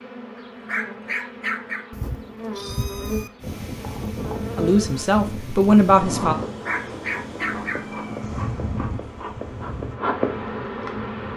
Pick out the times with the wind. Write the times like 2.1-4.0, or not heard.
3.4-11.3.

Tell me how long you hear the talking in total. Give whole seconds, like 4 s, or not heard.
2 s.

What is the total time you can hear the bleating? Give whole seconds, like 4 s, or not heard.
not heard.